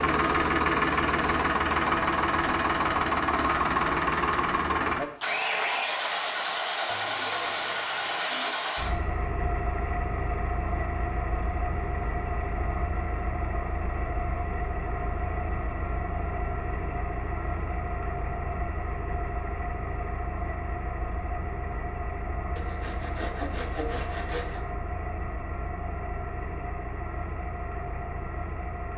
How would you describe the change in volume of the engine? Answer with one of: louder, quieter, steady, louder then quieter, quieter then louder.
quieter.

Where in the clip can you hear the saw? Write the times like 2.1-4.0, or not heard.
6.9-8.7, 22.6-24.6.